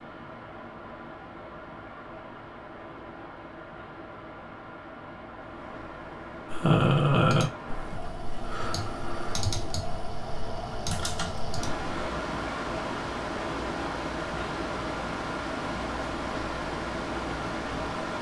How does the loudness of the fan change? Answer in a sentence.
The loudness of the fan goes up.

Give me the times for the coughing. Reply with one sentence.
You can't hear the coughing here.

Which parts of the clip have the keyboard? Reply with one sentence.
You can hear the keyboard from 6.5 to 11.8 s.